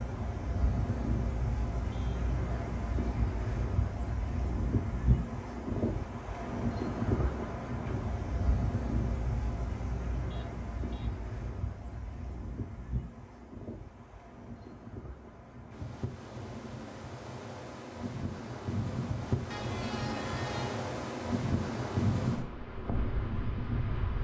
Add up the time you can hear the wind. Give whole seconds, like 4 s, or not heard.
24 s.